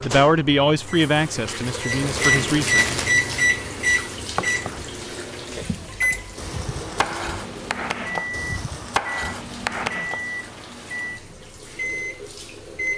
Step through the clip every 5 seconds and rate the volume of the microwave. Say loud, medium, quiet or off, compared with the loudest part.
loud, medium, medium.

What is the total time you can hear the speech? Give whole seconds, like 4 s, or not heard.
3 s.